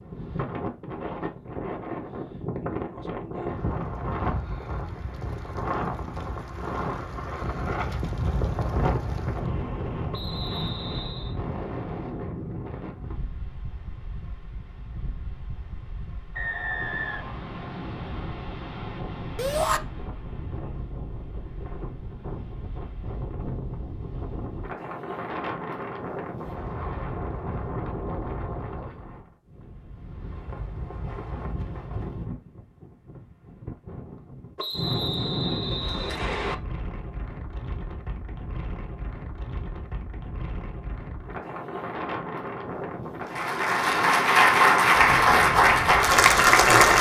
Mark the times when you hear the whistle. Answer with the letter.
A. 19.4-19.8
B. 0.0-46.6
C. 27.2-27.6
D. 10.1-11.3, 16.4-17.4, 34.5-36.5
D.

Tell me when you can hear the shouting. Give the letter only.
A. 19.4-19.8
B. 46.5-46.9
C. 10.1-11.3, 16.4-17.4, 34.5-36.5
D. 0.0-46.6
A.